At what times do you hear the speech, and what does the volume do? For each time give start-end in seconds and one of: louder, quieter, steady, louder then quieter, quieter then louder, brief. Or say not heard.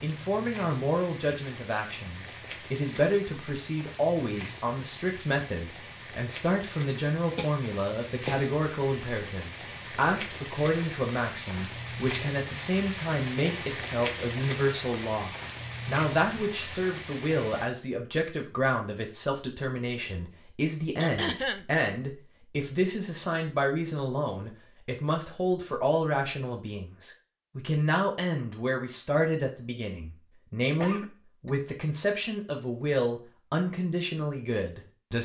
0.0-35.2 steady.